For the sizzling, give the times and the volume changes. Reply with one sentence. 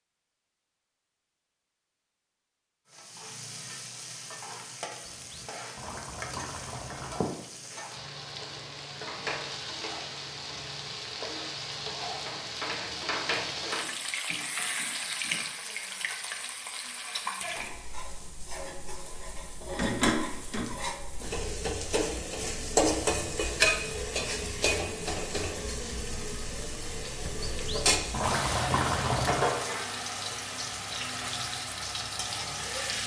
You can hear the sizzling from 2.9 to 33.0 s, getting louder.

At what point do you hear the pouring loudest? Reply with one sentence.
The volume of the pouring peaks at 29 seconds.